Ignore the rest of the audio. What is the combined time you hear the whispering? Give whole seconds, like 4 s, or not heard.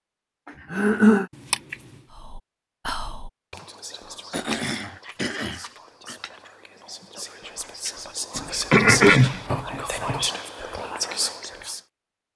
10 s.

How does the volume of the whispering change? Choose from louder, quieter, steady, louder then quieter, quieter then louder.
quieter then louder.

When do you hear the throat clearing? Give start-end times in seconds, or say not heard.
0.5-1.2, 4.3-6.2, 8.7-9.4.